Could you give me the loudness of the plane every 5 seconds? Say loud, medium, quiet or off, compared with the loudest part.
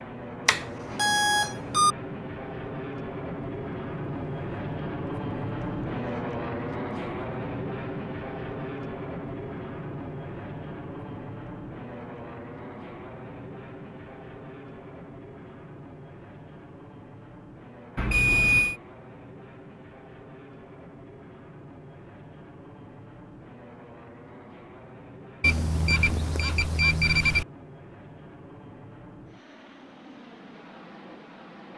loud, loud, medium, quiet, quiet, quiet, quiet.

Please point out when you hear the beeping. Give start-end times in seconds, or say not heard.
0.5-1.9, 17.9-18.8, 25.4-27.4.